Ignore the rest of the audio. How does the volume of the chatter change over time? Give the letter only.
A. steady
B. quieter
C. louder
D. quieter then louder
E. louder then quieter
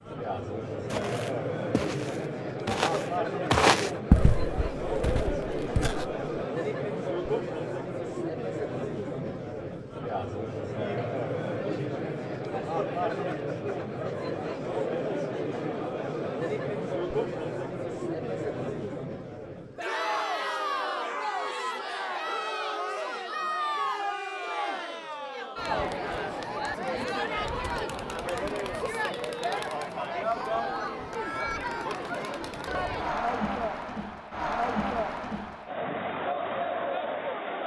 A.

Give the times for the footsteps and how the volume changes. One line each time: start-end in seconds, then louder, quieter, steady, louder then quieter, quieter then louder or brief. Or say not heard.
0.8-6.2 louder then quieter.